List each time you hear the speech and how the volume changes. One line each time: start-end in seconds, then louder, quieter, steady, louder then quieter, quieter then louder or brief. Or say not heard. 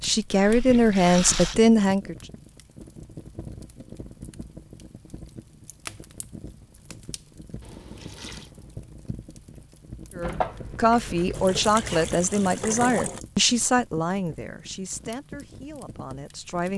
0.0-2.1 brief
10.2-16.7 quieter.